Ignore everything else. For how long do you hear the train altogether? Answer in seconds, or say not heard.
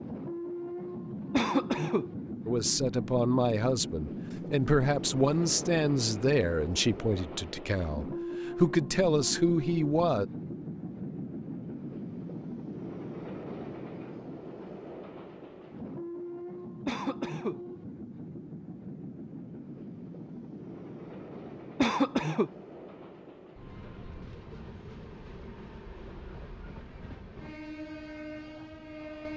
29 s.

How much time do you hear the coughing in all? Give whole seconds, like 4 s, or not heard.
2 s.